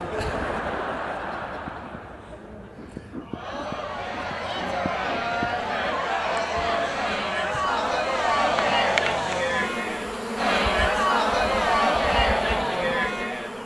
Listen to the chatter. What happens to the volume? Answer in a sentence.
The loudness of the chatter goes up.